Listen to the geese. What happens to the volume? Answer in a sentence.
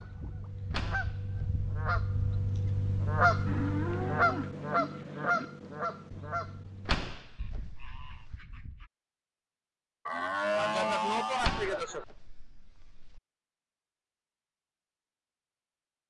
The volume of the geese goes up, then down.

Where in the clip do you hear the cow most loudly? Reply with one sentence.
The volume of the cow peaks at 11 seconds.